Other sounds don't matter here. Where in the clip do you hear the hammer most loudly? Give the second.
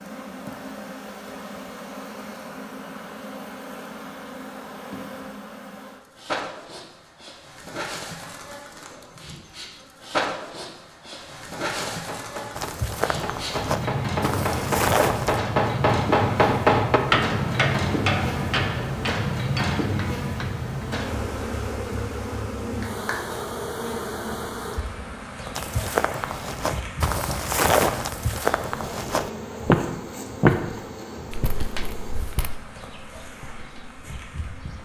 17 s.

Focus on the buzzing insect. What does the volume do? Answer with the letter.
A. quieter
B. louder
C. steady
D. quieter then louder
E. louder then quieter
E.